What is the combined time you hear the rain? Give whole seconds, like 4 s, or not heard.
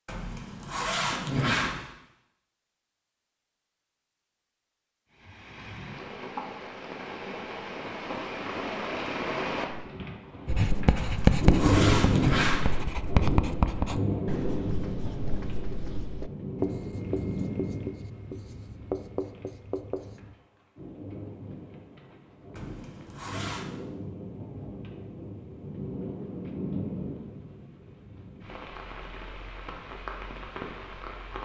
26 s.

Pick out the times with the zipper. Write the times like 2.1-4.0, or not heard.
0.1-1.8, 10.9-12.7, 22.6-23.7.